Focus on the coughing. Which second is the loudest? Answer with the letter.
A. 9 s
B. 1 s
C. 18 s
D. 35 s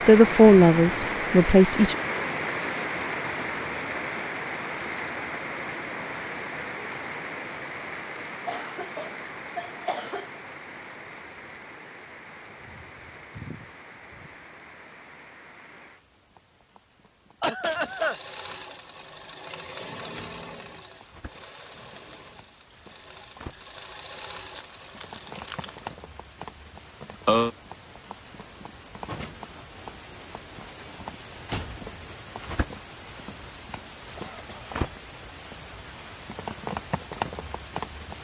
C.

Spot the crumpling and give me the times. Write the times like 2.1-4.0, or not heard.
24.5-25.9.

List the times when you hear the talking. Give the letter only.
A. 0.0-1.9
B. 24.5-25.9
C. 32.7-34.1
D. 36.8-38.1
A.